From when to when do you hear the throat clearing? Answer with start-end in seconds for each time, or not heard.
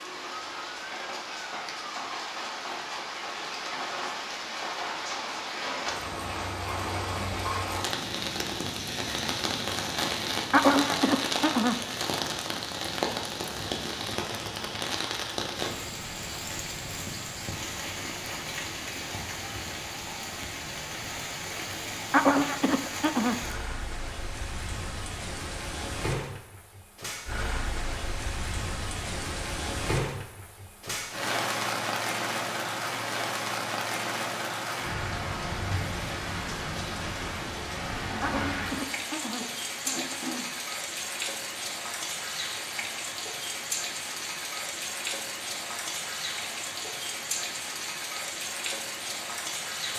10.5-11.8, 22.1-23.4, 38.2-40.5.